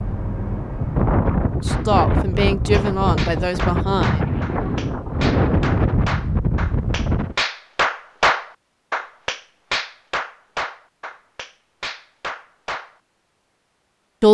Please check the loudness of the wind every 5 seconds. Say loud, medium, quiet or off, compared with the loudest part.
loud, loud, off.